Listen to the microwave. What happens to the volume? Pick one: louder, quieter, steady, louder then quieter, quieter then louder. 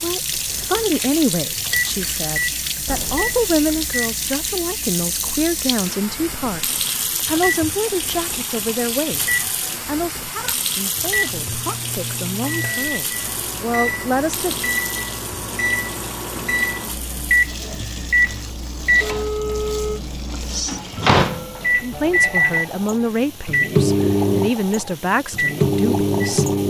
louder.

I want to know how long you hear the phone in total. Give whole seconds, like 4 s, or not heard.
2 s.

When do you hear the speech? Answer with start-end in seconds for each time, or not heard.
0.0-14.7, 21.8-26.6.